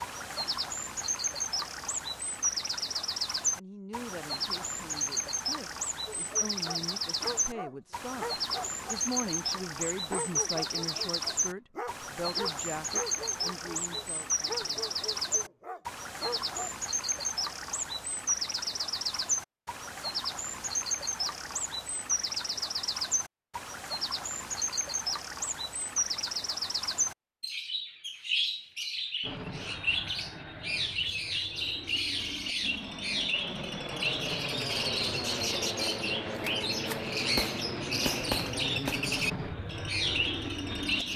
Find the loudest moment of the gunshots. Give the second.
38 s.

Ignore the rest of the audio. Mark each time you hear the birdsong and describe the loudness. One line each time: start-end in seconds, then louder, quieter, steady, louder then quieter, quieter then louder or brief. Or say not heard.
0.0-41.1 steady.